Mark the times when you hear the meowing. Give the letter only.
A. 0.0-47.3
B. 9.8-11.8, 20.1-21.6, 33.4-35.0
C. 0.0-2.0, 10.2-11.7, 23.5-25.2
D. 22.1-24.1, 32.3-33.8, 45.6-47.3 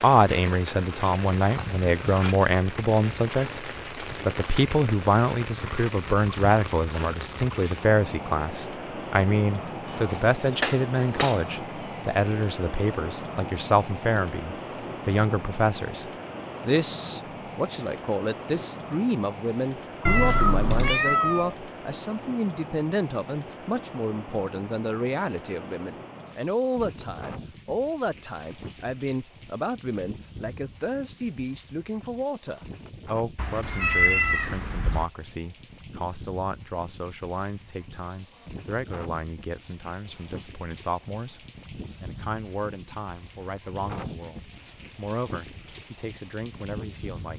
B.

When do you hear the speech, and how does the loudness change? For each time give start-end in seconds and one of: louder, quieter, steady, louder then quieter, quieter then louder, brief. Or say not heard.
0.0-47.3 quieter.